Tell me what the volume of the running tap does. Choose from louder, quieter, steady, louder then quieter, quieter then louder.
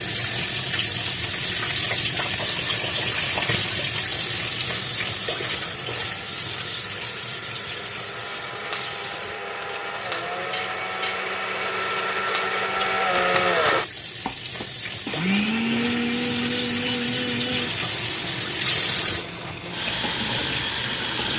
quieter then louder.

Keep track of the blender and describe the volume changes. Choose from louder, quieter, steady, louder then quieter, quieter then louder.
louder then quieter.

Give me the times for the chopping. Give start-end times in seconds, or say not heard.
not heard.